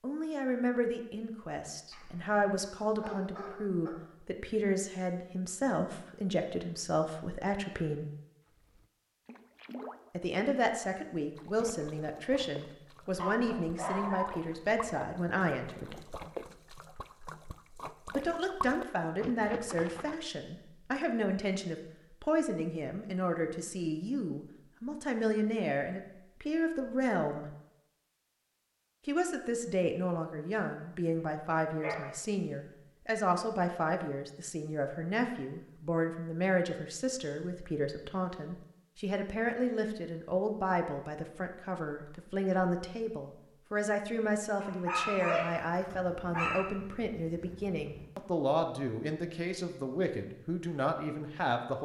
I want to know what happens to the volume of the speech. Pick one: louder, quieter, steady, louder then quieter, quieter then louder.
steady.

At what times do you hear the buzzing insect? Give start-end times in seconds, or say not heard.
not heard.